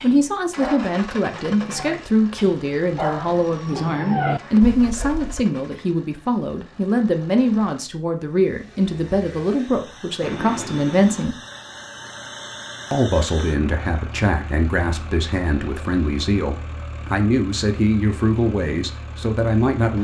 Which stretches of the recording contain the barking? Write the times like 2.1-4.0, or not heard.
0.0-5.5.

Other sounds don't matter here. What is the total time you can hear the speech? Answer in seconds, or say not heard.
18 s.